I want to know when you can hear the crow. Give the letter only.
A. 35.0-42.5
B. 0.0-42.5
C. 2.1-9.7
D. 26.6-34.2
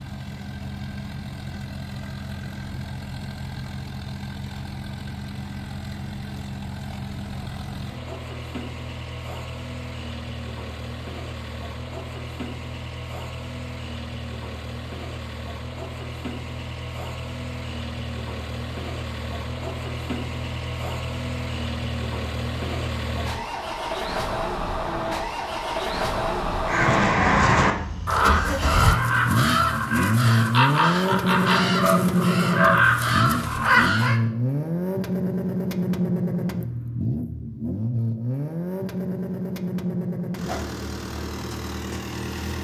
D.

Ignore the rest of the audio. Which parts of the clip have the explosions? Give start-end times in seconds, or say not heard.
not heard.